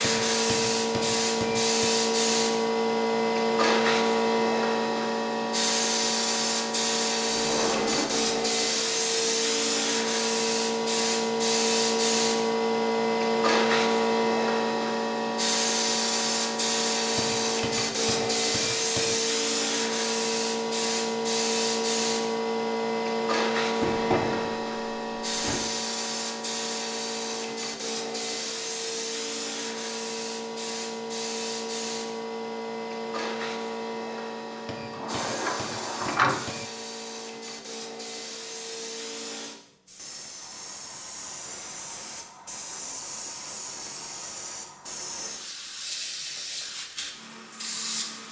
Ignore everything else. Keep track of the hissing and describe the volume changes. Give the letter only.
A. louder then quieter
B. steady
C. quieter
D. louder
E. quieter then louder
C.